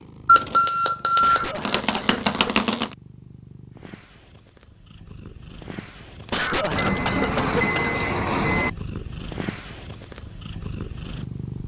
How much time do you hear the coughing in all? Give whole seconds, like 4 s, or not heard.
3 s.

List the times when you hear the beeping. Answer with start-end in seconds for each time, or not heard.
0.2-3.0, 6.7-8.7.